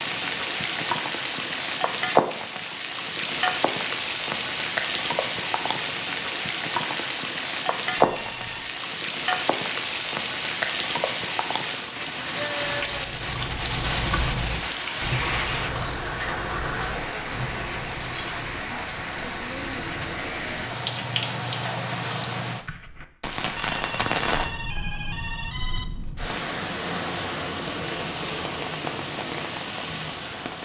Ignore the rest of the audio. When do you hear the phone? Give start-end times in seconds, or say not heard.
8.0-8.8, 23.6-25.9.